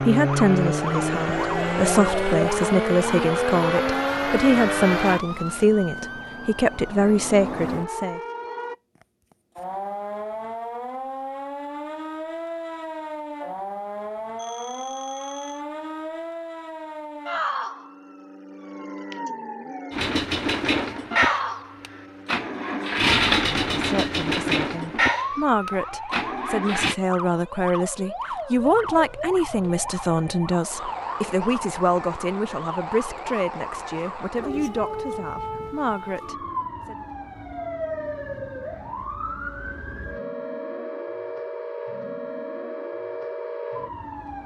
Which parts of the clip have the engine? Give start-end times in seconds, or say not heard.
0.0-5.2, 19.9-26.9.